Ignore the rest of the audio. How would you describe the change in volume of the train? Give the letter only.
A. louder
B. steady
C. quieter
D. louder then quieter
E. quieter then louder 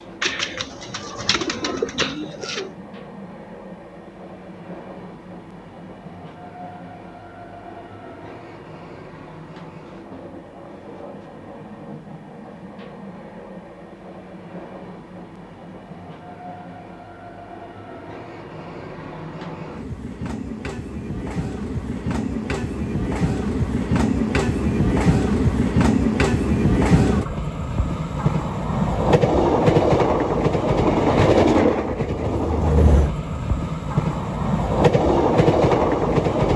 A.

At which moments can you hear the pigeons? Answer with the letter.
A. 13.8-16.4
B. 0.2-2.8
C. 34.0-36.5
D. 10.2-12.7
B.